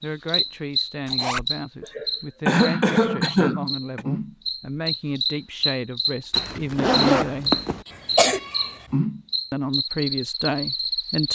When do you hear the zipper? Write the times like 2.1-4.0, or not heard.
1.1-1.5, 6.3-7.8.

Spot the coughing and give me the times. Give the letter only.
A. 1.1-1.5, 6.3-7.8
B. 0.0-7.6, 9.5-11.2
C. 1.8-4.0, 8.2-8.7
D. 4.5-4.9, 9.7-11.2
C.